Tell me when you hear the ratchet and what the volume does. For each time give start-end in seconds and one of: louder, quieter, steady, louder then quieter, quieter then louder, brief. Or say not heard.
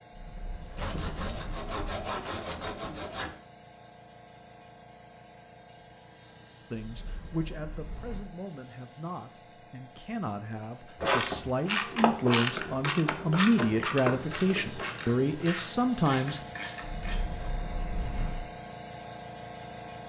11.0-17.2 quieter.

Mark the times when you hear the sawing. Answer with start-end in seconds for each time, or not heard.
0.8-3.4.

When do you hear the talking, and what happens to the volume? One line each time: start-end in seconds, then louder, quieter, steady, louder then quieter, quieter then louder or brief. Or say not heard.
6.7-16.4 louder.